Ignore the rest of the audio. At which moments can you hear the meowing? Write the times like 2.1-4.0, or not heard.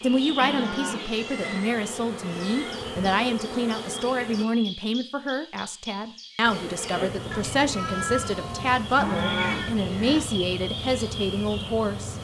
0.9-2.9, 7.3-9.7.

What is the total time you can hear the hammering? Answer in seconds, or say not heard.
not heard.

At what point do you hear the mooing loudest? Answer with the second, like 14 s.
9 s.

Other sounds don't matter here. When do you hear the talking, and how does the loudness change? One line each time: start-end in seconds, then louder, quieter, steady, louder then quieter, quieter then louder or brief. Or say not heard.
0.0-12.1 steady.